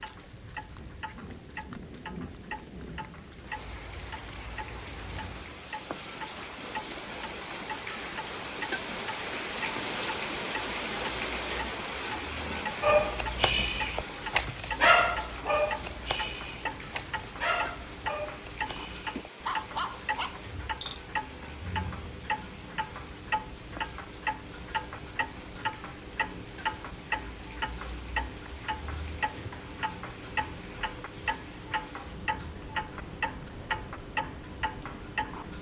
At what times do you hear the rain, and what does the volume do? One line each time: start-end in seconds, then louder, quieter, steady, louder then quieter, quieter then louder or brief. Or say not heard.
0.0-35.5 louder then quieter.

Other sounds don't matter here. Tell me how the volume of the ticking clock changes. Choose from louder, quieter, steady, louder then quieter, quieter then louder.
louder.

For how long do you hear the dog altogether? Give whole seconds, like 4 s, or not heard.
8 s.